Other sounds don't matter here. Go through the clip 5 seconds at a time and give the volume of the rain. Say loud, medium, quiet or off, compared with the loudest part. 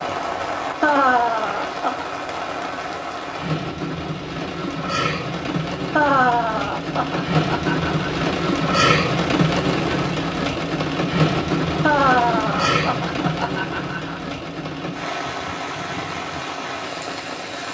medium, loud, loud, medium.